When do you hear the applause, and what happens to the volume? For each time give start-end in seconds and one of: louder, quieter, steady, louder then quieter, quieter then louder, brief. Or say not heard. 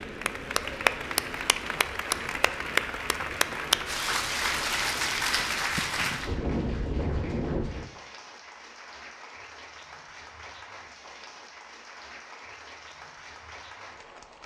0.0-14.4 quieter.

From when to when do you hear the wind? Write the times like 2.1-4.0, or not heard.
0.0-7.8.